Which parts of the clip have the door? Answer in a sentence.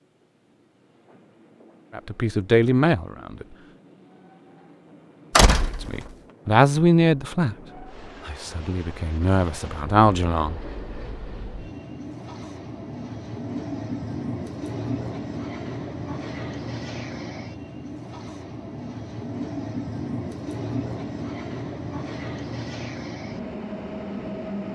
The door can be heard from 5.3 to 5.9 s.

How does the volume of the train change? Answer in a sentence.
The volume of the train goes up.